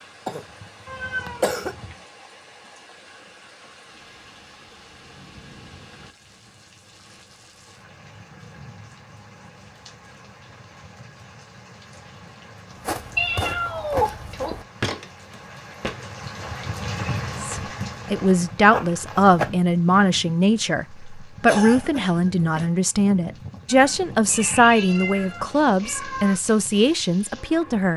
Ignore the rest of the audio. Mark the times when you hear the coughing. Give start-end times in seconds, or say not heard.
0.2-1.8, 21.4-22.6.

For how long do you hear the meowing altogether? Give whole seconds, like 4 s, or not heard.
5 s.